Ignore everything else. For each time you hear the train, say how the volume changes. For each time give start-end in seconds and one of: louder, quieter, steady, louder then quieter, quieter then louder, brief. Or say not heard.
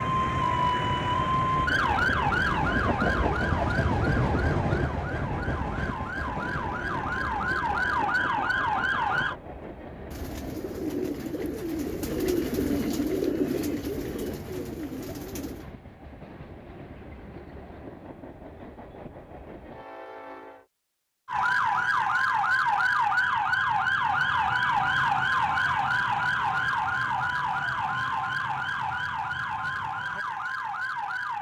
0.0-20.6 quieter.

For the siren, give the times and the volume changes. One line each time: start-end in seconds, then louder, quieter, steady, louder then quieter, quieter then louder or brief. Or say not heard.
0.0-9.3 quieter then louder
21.2-31.3 quieter.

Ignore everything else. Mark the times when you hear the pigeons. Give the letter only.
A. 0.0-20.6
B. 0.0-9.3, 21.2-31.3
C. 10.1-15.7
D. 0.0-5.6
C.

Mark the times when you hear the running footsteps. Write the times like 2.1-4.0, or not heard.
not heard.